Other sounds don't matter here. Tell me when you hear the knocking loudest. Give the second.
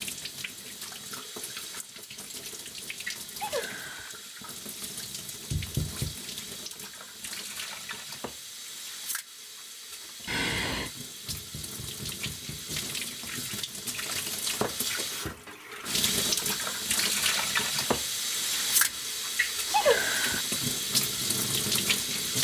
6 s.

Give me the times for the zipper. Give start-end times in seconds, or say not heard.
not heard.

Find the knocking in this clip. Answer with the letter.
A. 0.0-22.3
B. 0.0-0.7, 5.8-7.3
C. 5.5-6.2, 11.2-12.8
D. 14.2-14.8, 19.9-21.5
C.